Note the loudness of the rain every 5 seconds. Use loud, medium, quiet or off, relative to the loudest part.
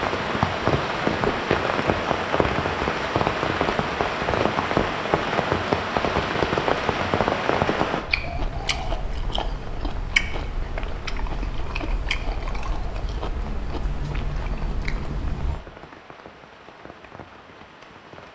loud, loud, quiet, quiet.